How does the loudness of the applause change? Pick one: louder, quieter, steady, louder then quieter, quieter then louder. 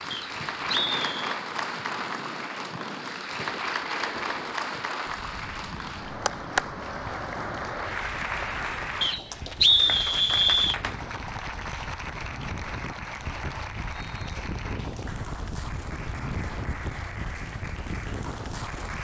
quieter.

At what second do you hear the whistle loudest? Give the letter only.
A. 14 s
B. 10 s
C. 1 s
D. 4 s
B.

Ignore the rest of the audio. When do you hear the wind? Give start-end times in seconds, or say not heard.
0.0-18.9.